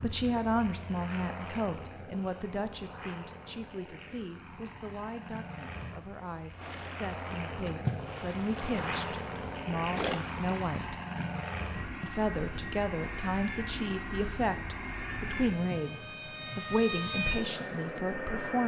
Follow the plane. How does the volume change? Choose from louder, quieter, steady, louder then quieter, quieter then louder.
louder.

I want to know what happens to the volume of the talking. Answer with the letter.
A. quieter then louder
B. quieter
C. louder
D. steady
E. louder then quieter
A.